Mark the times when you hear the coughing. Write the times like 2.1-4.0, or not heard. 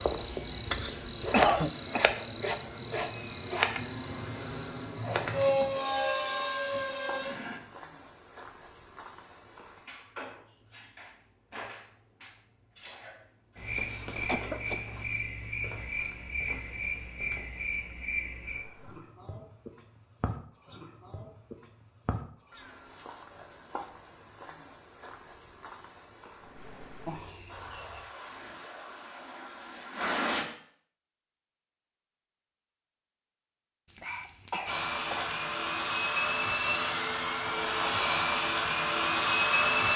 0.7-2.0, 13.9-14.8, 33.9-35.4.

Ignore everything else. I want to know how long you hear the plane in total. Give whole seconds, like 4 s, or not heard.
16 s.